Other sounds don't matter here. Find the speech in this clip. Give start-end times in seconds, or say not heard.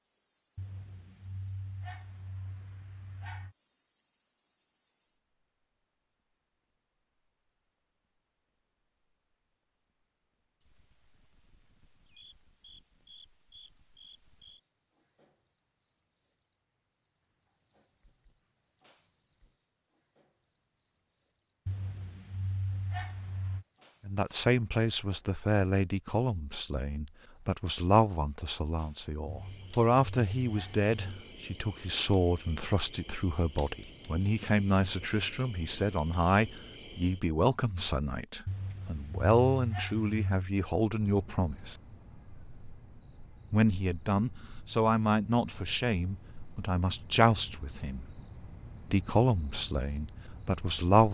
24.1-41.8, 43.5-48.2, 48.9-51.1.